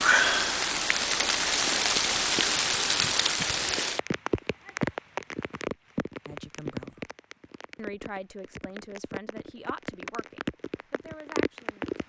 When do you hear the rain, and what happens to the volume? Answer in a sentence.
You can hear the rain from 0.0 to 12.0 s, getting quieter then louder.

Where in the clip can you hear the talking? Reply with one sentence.
You can hear the talking from 6.2 to 7.0 s and from 7.8 to 11.9 s.